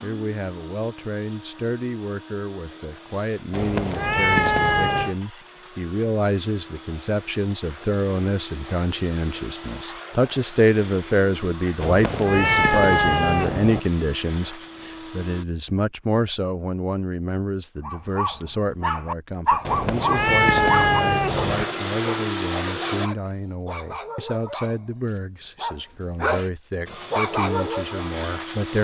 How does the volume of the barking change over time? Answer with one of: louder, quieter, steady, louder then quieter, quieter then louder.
quieter then louder.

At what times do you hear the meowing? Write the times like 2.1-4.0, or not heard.
3.5-5.2, 11.8-13.8, 19.6-21.6.